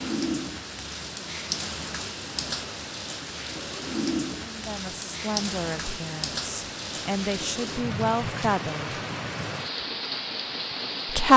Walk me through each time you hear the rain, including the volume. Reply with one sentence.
You can hear the rain from 0.0 to 11.3 s, at a steady volume.